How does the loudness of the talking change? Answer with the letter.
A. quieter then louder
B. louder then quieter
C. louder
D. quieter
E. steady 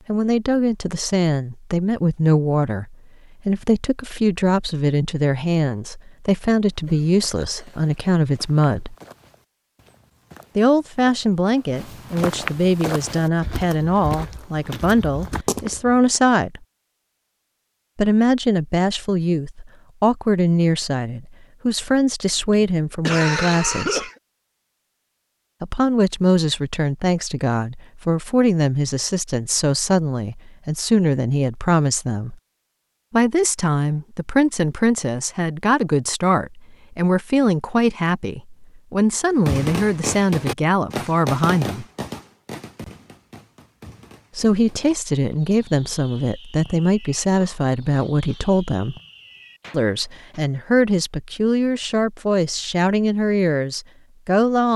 E.